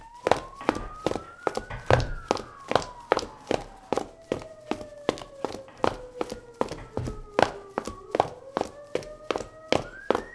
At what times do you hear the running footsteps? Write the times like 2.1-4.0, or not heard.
0.2-10.2.